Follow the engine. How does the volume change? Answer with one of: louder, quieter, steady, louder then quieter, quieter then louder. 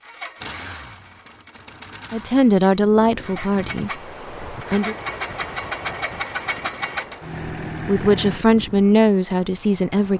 louder.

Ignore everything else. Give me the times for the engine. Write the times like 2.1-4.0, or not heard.
0.0-8.4.